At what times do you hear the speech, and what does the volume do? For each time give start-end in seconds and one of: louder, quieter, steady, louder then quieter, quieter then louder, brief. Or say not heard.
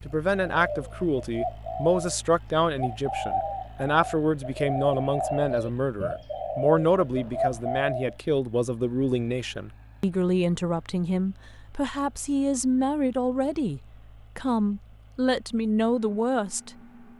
0.1-16.7 steady.